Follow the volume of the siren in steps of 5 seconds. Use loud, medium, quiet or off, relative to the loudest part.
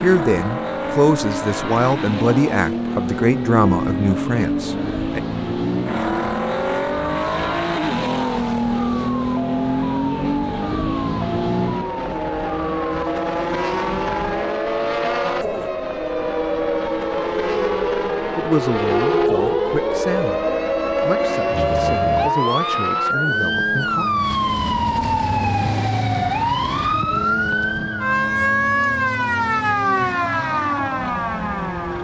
medium, medium, medium, loud, loud, loud, loud.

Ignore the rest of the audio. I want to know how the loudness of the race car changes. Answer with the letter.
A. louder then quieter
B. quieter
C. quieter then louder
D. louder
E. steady
B.